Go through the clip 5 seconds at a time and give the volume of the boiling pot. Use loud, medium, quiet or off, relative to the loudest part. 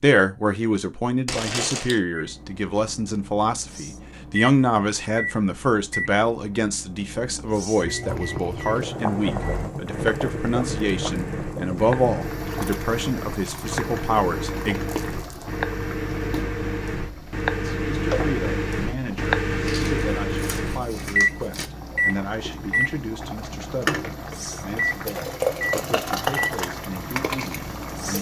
off, loud, medium, medium, medium, loud.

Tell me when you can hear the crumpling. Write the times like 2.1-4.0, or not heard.
1.2-2.0, 14.8-15.4, 19.6-21.7.